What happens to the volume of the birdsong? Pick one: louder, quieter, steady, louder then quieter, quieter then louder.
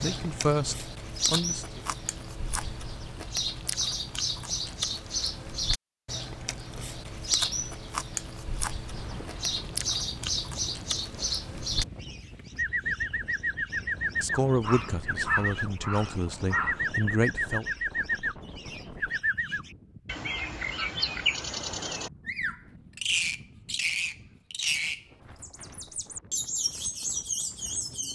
steady.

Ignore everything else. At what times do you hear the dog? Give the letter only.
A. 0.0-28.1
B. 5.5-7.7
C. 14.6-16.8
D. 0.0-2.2
C.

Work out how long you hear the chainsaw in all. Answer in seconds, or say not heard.
not heard.